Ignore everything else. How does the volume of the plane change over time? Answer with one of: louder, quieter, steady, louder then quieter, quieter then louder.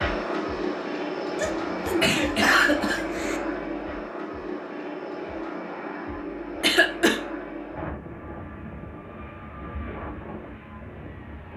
quieter.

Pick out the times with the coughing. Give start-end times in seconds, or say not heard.
1.4-3.4, 6.6-7.2.